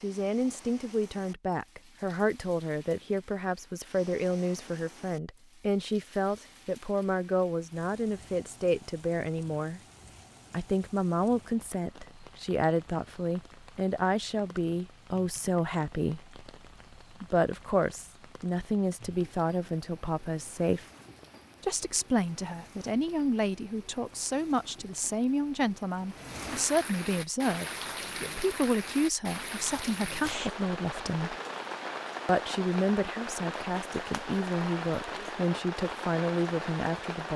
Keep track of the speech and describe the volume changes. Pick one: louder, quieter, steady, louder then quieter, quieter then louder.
steady.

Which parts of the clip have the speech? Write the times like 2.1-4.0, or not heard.
0.0-9.8, 10.5-16.4, 17.2-20.9, 21.6-31.4, 32.2-37.3.